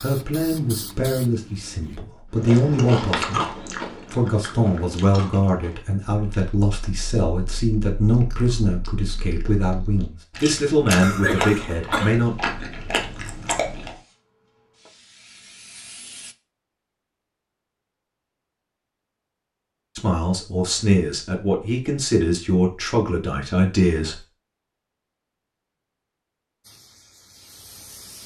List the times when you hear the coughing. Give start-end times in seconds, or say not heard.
11.0-12.2.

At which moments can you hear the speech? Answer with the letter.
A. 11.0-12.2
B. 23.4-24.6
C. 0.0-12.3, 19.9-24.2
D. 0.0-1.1
C.